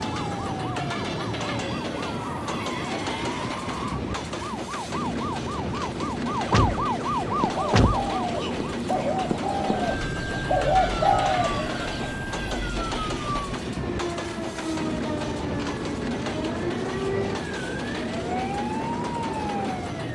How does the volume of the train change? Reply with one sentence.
The loudness of the train stays about the same.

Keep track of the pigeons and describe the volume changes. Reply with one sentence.
The volume of the pigeons goes up, then down.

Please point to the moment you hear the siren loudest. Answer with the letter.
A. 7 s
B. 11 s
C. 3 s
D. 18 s
A.